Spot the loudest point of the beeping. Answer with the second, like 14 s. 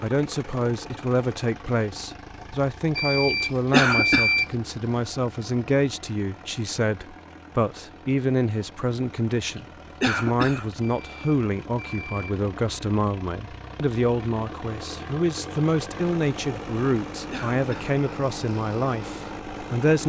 4 s.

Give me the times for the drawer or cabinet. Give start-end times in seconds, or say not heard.
not heard.